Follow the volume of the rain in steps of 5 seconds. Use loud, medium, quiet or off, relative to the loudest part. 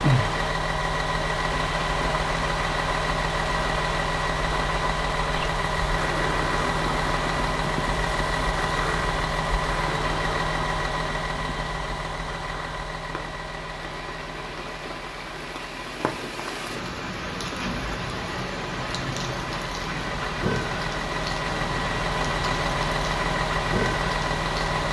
loud, loud, medium, loud, loud.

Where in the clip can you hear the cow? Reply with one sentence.
You can't hear the cow here.